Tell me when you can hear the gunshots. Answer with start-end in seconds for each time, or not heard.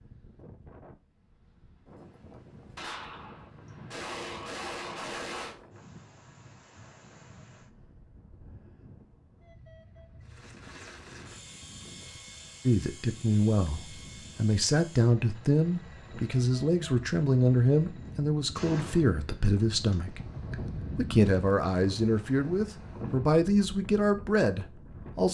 2.8-5.5, 18.6-19.9.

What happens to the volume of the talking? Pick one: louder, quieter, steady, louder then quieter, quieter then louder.
steady.